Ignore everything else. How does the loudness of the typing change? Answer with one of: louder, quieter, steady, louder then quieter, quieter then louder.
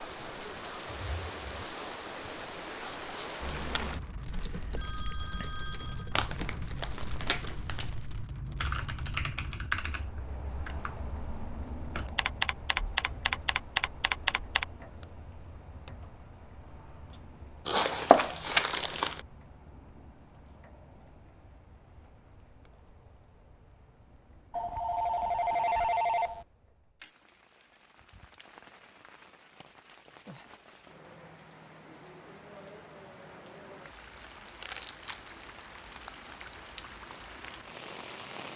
quieter then louder.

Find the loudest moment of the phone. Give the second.
26 s.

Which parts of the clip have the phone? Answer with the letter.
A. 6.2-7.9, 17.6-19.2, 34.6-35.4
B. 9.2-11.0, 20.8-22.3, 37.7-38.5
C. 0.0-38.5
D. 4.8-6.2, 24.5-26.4
D.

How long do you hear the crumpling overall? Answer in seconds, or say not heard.
4 s.